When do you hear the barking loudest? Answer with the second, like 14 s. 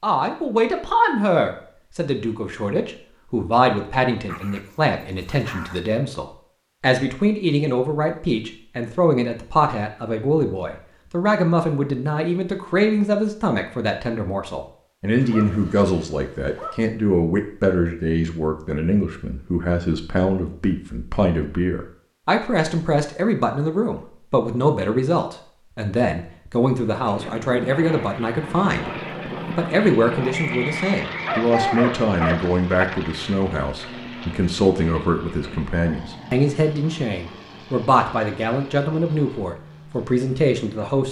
32 s.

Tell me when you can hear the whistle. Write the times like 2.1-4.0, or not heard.
30.3-31.4.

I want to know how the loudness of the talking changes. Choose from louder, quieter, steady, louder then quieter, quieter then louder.
steady.